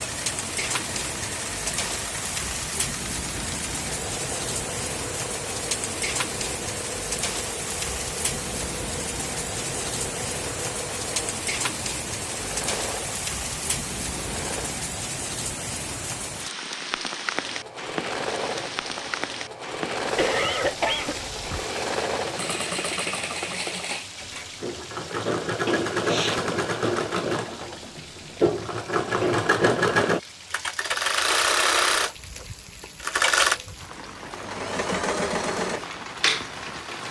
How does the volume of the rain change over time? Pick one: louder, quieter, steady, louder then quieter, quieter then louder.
quieter.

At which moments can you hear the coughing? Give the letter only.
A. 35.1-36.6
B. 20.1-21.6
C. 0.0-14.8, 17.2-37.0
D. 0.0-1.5
B.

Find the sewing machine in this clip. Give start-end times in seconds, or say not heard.
0.0-14.8, 17.2-37.0.